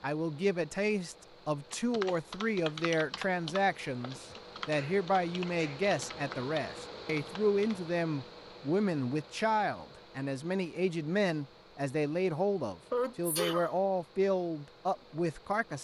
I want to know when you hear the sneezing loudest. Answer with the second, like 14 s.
13 s.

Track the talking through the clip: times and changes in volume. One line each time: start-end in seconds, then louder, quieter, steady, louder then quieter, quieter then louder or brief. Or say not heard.
0.0-15.8 steady.